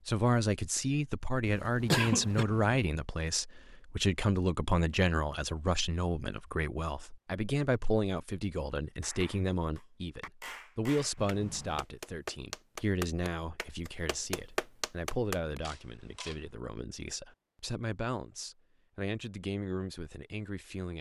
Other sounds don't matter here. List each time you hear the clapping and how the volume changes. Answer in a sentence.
You can hear the clapping from 9.0 to 15.6 s, getting louder.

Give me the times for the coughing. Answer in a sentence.
You can hear the coughing from 1.4 to 2.5 s.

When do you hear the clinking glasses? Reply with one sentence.
The clinking glasses can't be heard in this clip.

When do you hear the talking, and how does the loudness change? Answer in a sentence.
You can hear the talking from 0.1 to 20.9 s, getting quieter.